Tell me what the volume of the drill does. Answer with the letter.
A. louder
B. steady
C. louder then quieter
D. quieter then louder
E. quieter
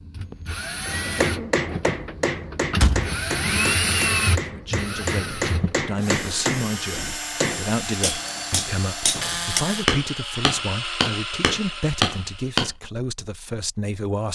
C.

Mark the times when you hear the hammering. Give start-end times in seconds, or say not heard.
0.8-12.7.